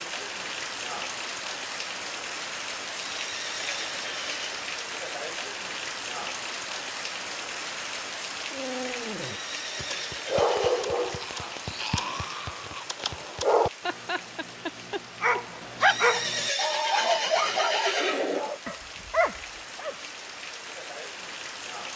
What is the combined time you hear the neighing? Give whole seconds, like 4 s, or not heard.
6 s.